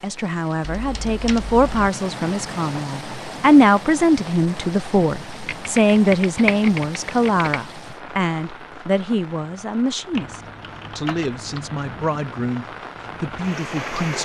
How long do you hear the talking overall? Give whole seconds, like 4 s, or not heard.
14 s.